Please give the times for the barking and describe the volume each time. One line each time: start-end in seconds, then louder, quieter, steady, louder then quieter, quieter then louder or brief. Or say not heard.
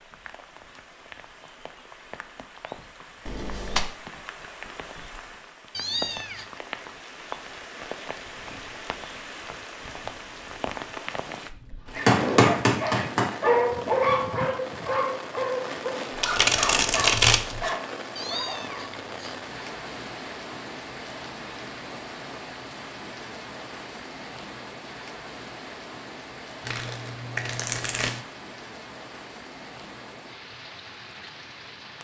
11.9-18.8 quieter.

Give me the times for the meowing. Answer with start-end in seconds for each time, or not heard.
5.7-6.5, 18.1-19.4.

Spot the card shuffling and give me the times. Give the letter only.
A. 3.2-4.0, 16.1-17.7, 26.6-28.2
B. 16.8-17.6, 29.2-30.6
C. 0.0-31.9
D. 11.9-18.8
A.